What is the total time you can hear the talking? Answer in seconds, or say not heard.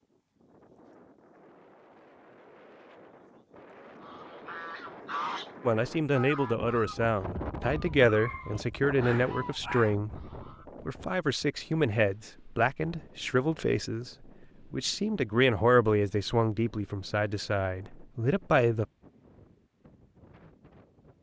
13 s.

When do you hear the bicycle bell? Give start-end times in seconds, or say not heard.
not heard.